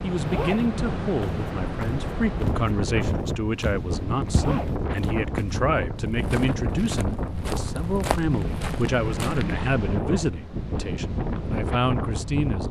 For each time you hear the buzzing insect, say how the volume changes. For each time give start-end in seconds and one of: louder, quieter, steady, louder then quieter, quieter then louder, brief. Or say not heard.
not heard.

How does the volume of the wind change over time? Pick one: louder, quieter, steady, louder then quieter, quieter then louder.
steady.